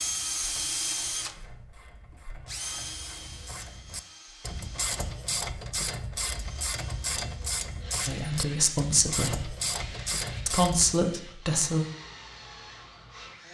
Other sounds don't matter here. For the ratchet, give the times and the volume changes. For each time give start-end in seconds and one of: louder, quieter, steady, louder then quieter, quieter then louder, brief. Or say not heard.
0.0-11.0 louder.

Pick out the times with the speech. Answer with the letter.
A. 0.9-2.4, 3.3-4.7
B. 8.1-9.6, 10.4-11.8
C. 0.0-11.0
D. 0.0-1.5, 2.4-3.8
B.